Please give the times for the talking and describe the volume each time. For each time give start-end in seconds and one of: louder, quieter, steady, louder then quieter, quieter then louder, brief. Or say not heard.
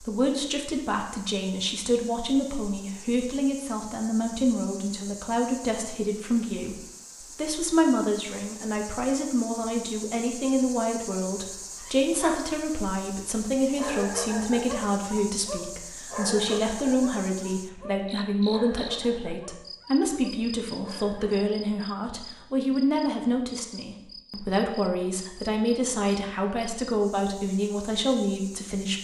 0.0-28.9 steady.